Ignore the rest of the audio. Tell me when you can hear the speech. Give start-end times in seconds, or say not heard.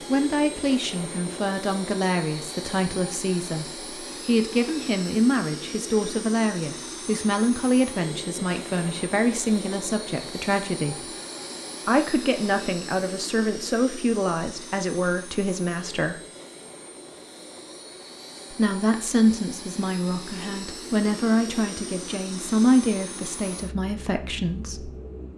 0.0-11.1, 11.8-16.2, 18.5-24.9.